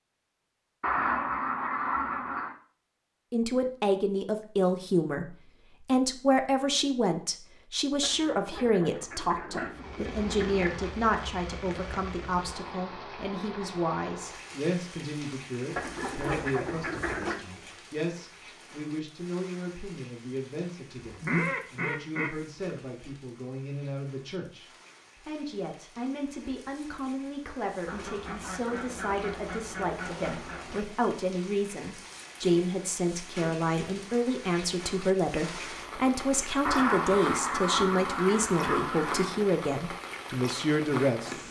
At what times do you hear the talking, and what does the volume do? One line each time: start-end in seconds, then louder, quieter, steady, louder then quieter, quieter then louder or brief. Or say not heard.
3.3-41.3 quieter then louder.